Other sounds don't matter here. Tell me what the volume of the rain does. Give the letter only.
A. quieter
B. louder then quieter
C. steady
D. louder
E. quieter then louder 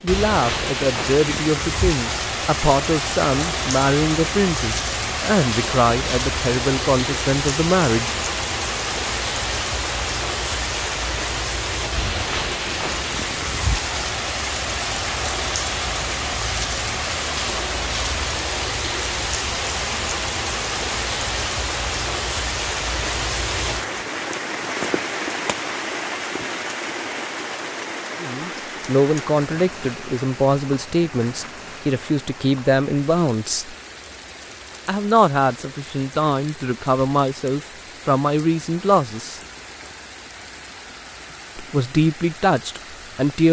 A.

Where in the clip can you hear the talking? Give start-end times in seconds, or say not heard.
0.0-8.2, 28.2-33.8, 34.9-39.4, 41.5-43.4.